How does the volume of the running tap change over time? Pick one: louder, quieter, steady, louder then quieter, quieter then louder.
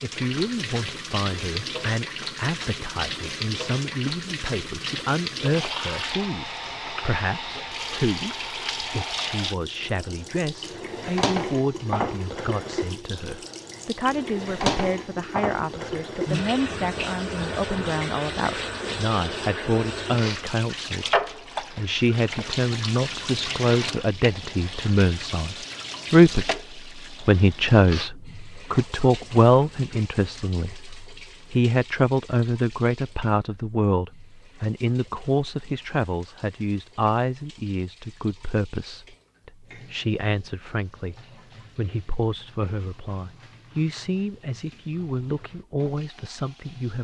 quieter.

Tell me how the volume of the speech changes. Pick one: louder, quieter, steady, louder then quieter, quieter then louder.
louder then quieter.